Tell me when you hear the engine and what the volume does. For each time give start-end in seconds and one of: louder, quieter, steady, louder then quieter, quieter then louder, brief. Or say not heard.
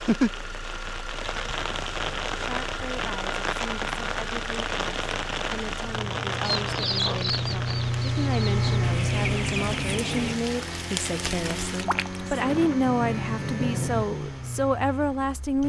0.0-15.6 louder then quieter.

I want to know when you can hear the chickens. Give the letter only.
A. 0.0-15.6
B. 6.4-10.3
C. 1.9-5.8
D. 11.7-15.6
B.